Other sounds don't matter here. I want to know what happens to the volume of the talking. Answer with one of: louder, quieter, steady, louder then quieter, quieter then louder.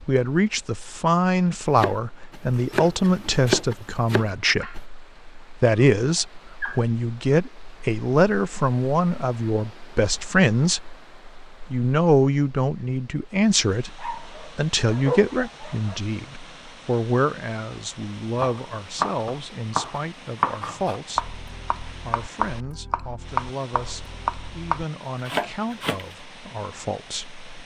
quieter.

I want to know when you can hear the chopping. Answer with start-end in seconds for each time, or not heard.
1.8-4.8, 18.4-26.1.